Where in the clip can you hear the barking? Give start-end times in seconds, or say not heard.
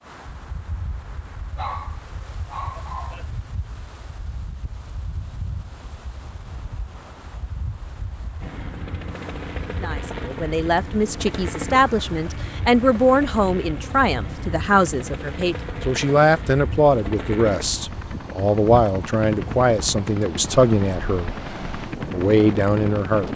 1.6-3.2.